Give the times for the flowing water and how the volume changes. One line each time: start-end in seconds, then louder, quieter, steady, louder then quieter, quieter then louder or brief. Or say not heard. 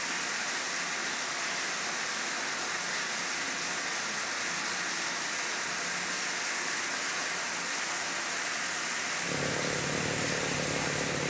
0.0-11.2 steady.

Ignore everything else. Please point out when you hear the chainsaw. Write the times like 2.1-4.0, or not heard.
9.2-11.2.